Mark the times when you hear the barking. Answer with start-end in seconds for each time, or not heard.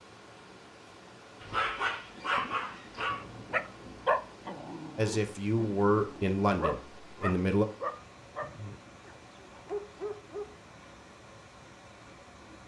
1.4-11.1.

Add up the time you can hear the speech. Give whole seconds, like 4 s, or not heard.
3 s.